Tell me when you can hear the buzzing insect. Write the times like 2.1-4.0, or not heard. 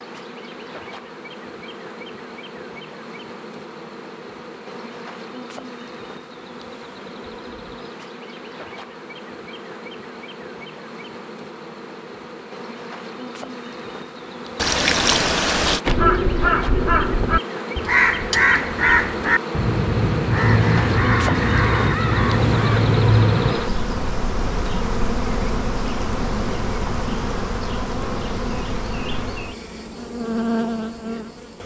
0.0-31.6.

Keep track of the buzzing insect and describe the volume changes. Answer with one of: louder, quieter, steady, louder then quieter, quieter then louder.
louder.